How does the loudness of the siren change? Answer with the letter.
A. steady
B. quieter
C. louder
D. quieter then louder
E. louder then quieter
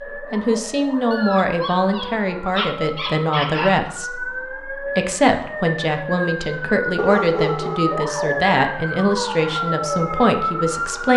C.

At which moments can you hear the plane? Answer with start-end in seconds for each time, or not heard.
not heard.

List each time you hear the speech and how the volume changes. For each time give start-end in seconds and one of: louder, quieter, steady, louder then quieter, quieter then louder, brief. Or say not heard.
0.1-11.1 steady.